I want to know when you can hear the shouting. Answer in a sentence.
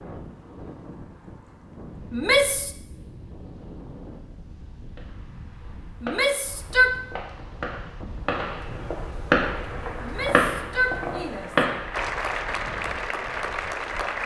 The shouting can be heard from 2.1 to 2.7 s, from 6.0 to 7.0 s and from 10.0 to 11.7 s.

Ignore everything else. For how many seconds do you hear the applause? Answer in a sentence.
The applause can be heard for 5 seconds in total.